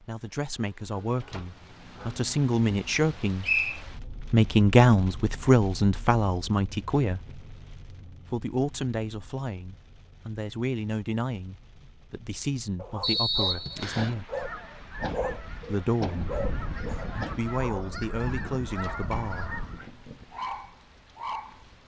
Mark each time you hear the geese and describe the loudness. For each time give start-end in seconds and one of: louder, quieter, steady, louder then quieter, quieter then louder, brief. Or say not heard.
14.2-19.9 louder.